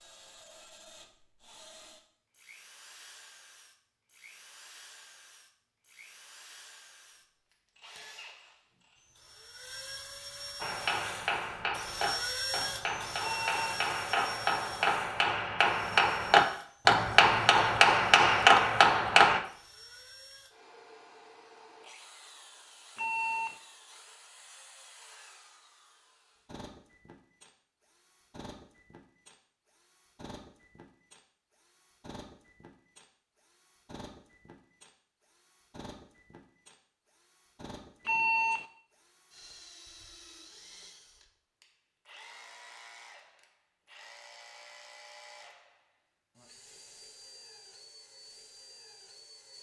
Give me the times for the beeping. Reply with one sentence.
You can hear the beeping from 13.2 to 13.8 s, from 22.9 to 23.6 s and from 38.0 to 38.6 s.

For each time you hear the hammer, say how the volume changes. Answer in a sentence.
The hammer can be heard from 10.6 to 19.4 s, getting louder.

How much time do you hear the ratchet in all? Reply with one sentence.
You can't hear the ratchet here.